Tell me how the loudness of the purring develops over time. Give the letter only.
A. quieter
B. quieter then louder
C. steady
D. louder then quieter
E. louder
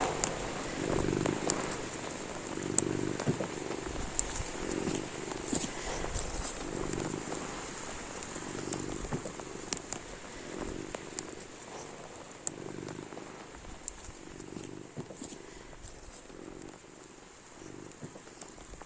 A.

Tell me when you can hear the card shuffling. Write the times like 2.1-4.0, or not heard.
not heard.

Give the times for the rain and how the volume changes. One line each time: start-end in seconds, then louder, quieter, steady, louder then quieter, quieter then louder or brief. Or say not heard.
0.0-18.8 quieter.